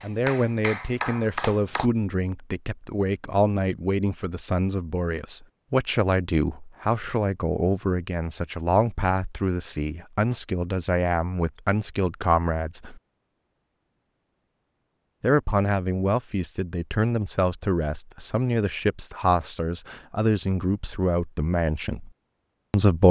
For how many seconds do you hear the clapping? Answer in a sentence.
You can hear the clapping for 2 seconds altogether.